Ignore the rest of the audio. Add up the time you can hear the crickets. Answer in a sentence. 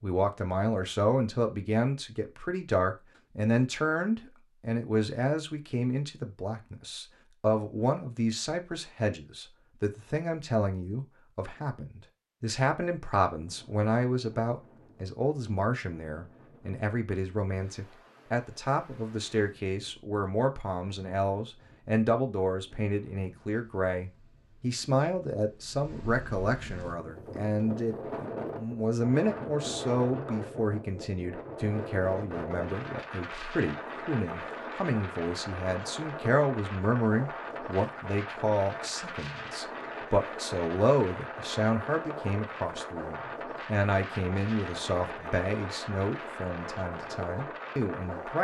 You can't hear the crickets here.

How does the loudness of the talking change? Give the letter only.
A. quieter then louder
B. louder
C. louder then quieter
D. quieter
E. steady
E.